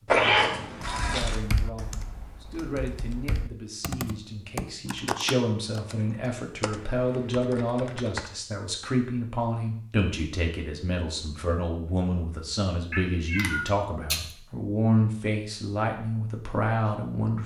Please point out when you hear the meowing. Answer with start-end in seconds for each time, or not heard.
0.1-1.4, 12.9-14.2.